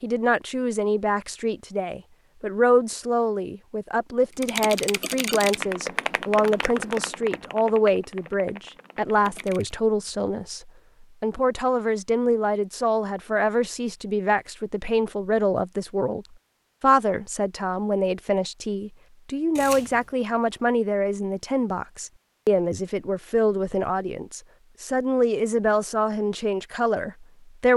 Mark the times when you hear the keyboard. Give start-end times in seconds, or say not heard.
4.3-9.8.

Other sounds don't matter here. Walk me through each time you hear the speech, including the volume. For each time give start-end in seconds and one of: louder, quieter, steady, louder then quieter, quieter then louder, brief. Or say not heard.
0.0-27.7 steady.